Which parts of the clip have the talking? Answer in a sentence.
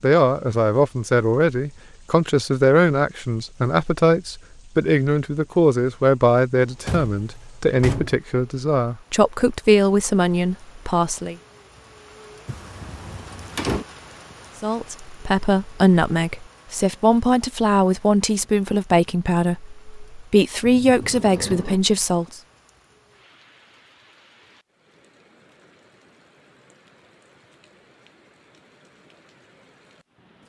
The talking can be heard from 0.0 to 11.3 s and from 14.6 to 22.4 s.